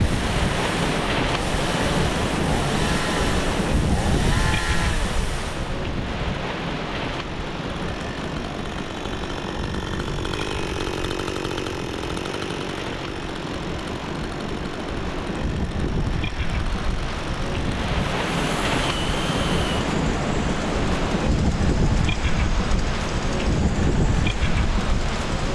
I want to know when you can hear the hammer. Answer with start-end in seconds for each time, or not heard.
not heard.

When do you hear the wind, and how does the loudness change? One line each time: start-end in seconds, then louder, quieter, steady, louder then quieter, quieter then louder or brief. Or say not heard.
0.0-25.5 quieter then louder.